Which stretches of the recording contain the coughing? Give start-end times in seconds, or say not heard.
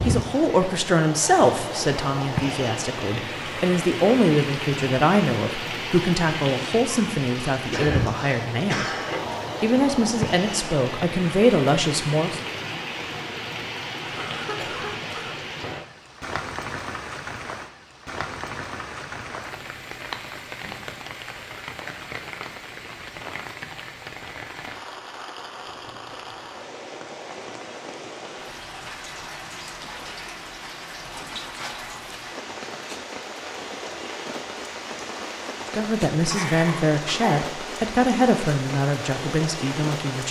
7.3-9.3, 14.1-15.3, 36.3-37.9.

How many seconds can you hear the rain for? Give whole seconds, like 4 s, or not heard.
40 s.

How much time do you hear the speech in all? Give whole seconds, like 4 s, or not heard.
16 s.